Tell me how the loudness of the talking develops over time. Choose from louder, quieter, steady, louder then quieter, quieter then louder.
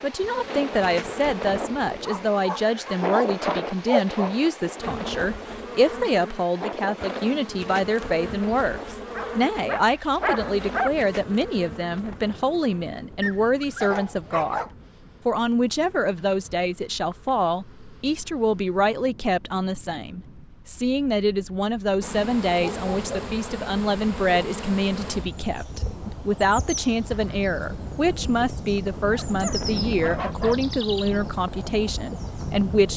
steady.